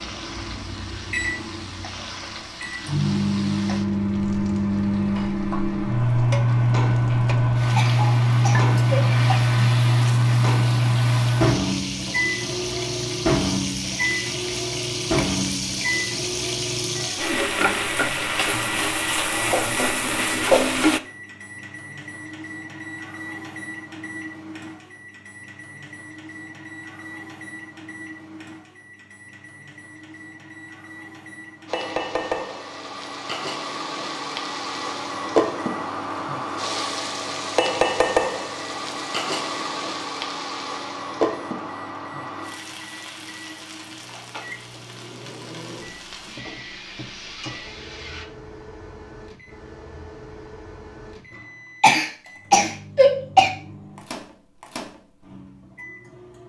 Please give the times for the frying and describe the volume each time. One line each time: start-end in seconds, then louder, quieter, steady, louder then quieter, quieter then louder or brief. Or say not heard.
0.0-21.0 louder
31.6-48.2 louder then quieter.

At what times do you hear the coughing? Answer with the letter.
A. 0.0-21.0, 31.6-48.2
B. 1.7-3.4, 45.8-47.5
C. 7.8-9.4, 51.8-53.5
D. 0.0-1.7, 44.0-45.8
C.